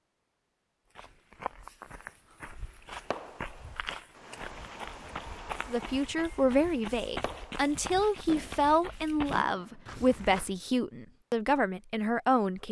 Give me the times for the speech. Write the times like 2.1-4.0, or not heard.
5.7-12.6.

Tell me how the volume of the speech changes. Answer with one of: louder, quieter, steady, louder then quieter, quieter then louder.
steady.